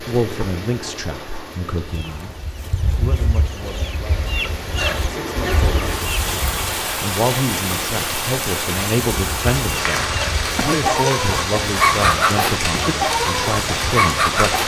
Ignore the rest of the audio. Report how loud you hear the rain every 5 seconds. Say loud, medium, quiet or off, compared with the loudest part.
medium, loud, loud.